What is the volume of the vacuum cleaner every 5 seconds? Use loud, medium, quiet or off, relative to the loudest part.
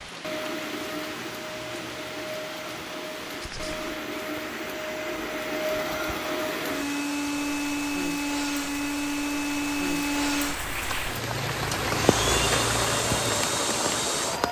medium, loud, loud.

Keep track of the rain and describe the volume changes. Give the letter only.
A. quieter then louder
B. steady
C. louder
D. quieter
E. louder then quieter
C.